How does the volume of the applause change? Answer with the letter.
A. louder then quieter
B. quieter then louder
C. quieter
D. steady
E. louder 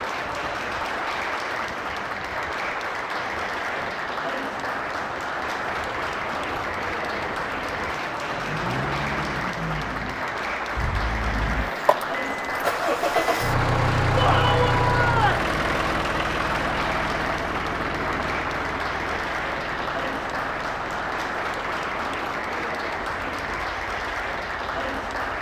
D.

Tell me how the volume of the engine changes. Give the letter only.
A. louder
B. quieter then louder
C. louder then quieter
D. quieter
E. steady
C.